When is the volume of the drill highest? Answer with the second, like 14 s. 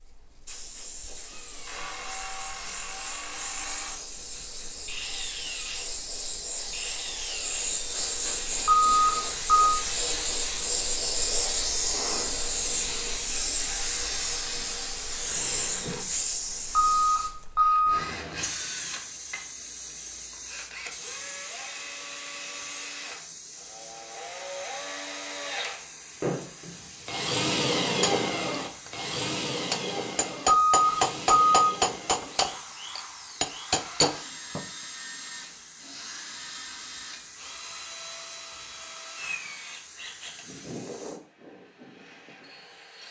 28 s.